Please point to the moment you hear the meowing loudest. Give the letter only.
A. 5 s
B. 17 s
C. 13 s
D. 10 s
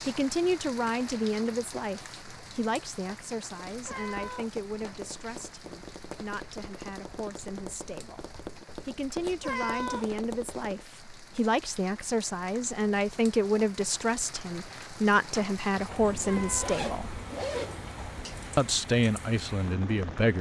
D.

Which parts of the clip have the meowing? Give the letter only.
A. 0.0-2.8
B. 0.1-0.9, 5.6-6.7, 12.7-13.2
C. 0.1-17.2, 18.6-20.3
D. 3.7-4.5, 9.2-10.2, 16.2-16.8
D.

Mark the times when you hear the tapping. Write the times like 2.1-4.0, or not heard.
3.5-10.9.